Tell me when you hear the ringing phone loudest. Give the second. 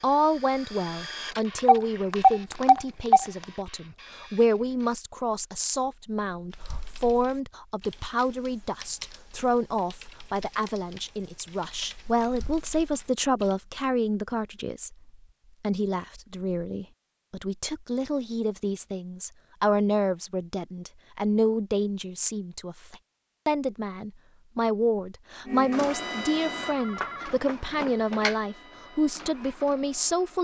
2 s.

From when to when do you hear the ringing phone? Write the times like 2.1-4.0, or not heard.
1.6-3.5, 26.6-28.4.